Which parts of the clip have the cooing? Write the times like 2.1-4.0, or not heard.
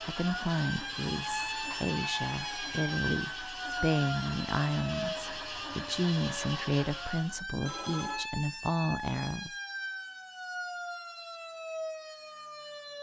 not heard.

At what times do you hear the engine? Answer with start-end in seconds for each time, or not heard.
0.0-7.4.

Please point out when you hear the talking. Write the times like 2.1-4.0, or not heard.
0.0-9.5.